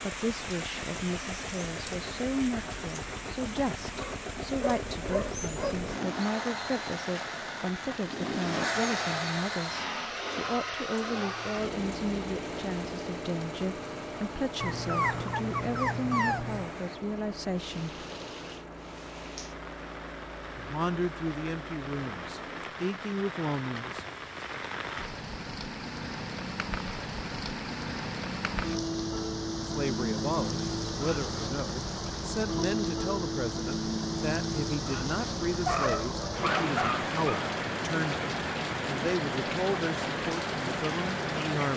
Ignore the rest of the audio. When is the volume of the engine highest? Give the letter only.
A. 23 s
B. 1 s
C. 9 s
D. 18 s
C.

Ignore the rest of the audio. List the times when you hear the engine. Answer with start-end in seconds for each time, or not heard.
0.0-22.7.